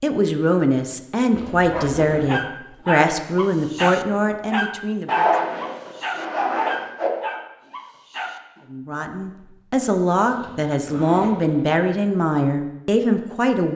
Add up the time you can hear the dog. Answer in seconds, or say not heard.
7 s.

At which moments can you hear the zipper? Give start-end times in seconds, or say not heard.
1.3-2.4, 5.0-7.1, 10.2-11.8.